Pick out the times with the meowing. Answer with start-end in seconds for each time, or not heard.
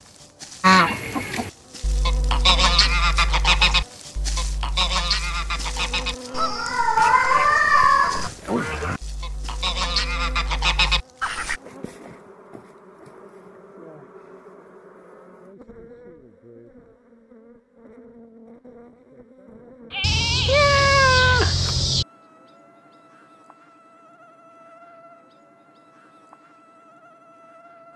6.3-8.3, 20.0-22.1.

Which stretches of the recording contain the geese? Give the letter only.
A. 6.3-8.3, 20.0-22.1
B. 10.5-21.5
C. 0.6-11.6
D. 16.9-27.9
C.